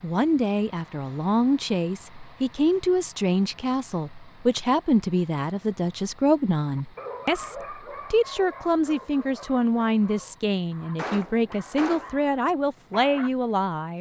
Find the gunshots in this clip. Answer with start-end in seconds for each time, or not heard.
10.9-12.2.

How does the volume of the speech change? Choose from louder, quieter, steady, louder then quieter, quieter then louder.
steady.